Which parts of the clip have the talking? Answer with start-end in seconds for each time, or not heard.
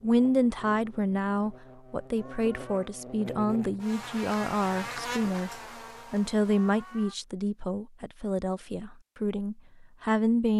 0.0-5.5, 6.1-10.5.